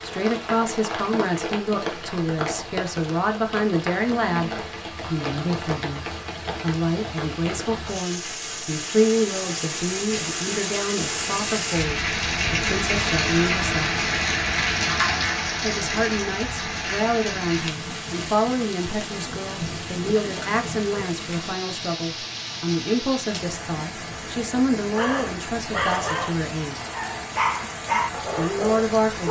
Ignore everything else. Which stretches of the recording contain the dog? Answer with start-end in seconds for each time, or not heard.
24.8-29.2.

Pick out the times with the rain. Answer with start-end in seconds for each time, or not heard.
0.0-29.2.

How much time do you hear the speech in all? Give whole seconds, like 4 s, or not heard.
26 s.